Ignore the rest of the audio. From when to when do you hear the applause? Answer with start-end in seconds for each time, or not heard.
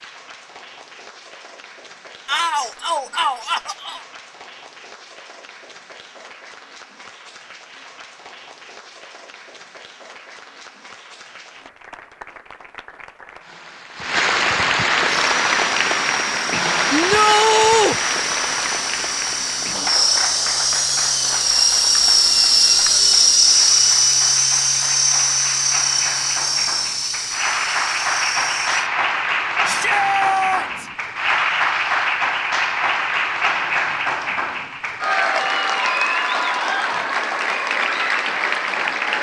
0.0-39.1.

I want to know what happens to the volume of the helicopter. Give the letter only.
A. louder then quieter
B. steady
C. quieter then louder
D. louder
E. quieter
A.